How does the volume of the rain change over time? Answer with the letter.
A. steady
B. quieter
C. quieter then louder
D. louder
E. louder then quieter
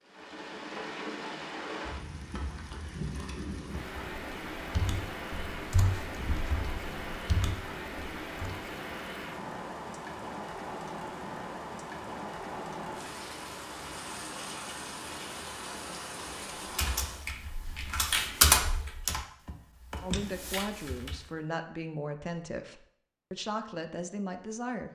A.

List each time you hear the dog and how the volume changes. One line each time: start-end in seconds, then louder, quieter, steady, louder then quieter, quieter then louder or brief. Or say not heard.
not heard.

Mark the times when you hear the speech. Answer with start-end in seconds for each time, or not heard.
20.0-24.8.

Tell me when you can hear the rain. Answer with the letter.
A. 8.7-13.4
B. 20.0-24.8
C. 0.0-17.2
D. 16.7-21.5
C.